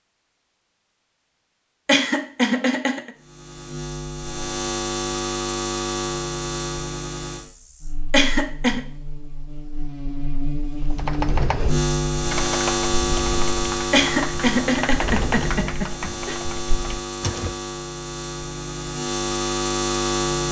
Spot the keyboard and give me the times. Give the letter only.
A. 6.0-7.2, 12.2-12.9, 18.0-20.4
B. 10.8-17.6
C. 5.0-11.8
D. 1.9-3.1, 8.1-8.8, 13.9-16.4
B.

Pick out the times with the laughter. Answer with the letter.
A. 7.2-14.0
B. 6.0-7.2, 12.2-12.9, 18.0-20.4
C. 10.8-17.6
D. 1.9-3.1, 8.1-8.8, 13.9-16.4
D.